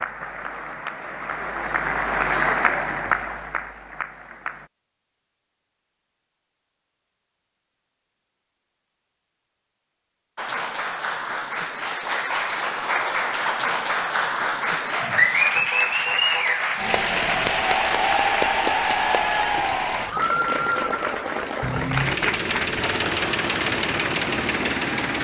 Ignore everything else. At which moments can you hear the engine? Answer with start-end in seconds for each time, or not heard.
21.6-25.1.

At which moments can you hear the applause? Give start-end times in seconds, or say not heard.
0.0-4.7, 10.3-25.1.